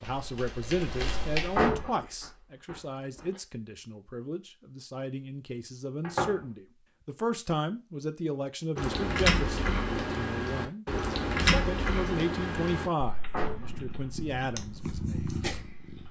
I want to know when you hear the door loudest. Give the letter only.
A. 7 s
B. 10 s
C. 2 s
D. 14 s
C.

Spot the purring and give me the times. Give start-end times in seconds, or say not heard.
13.5-16.0.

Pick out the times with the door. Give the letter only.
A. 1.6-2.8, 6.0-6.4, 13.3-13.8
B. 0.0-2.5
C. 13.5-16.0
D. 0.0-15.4
A.